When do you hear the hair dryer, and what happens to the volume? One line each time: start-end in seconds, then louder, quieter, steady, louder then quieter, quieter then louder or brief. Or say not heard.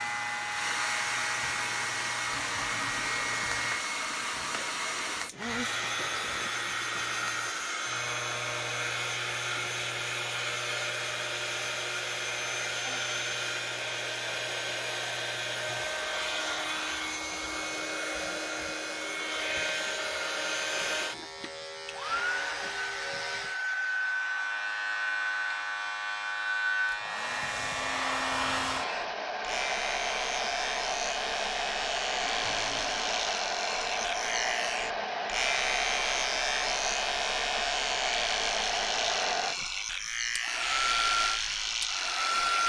0.0-42.6 steady.